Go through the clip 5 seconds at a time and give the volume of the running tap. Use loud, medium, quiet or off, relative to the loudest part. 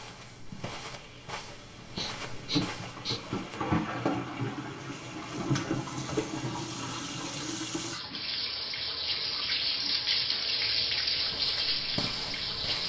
medium, loud, loud.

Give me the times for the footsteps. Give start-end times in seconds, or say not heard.
0.0-3.6, 11.1-12.8.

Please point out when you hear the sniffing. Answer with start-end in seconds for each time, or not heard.
1.9-3.2, 8.1-8.8.